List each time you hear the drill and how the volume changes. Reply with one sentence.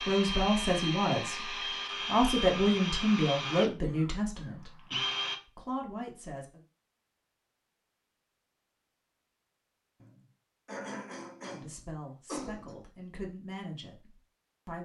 The drill can be heard from 0.0 to 5.4 s, at a steady volume.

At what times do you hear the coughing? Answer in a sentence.
You can hear the coughing from 3.8 to 4.5 s and from 10.0 to 12.8 s.